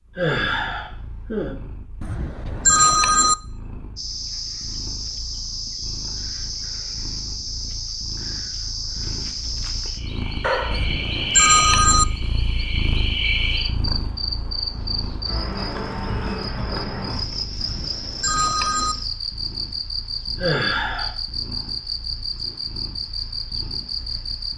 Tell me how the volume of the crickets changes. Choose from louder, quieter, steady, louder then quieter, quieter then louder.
steady.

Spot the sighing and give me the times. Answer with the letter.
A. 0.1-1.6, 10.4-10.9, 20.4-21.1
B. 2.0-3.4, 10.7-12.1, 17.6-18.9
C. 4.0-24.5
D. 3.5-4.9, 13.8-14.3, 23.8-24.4
A.